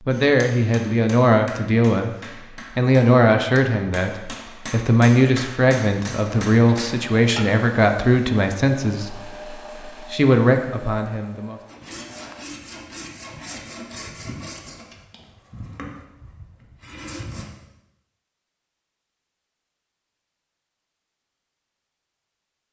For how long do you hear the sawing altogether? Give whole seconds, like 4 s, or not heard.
6 s.